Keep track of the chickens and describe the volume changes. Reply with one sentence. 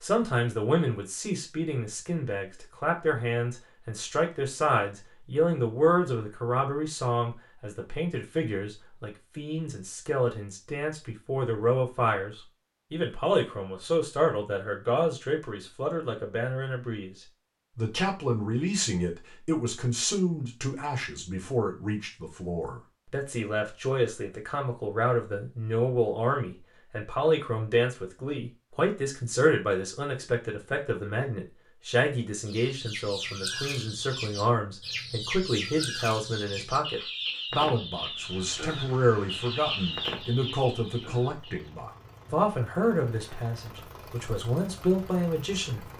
The volume of the chickens stays about the same.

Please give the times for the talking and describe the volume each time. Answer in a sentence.
You can hear the talking from 0.0 to 45.9 s, at a steady volume.